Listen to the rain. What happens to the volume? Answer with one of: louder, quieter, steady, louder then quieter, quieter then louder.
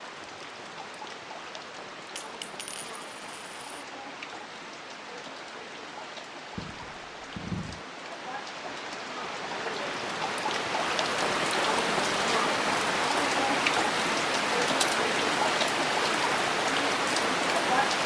louder.